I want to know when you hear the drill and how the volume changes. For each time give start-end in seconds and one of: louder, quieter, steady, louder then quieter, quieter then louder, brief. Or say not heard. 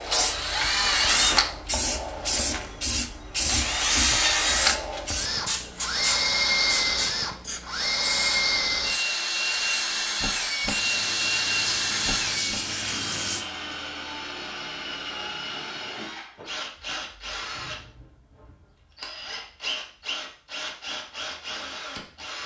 0.1-22.4 quieter.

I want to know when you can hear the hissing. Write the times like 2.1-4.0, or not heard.
0.0-13.4.